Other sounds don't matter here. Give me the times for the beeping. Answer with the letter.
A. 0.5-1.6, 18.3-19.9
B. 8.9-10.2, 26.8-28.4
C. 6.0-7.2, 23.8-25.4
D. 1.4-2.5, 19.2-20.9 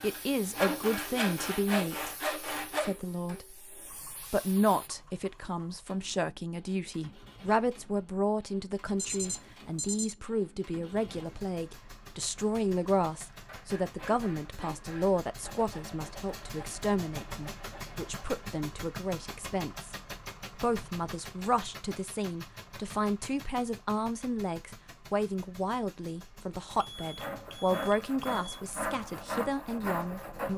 B.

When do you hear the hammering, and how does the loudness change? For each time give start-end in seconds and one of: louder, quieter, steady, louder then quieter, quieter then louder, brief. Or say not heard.
not heard.